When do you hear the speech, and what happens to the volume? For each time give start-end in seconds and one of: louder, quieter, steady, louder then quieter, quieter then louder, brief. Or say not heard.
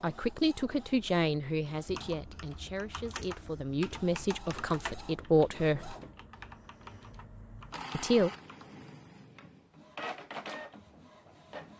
0.0-6.0 quieter then louder
7.9-8.3 brief.